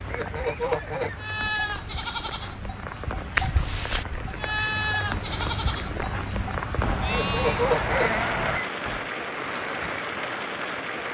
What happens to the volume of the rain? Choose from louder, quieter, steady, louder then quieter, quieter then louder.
louder.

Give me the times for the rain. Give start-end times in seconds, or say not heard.
0.0-11.0.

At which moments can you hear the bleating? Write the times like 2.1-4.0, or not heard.
1.1-9.1.